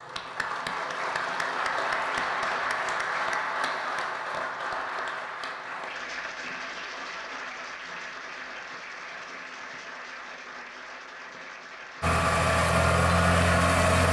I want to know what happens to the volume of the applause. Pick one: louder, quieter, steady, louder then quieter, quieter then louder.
quieter.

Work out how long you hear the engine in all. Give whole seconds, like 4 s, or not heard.
2 s.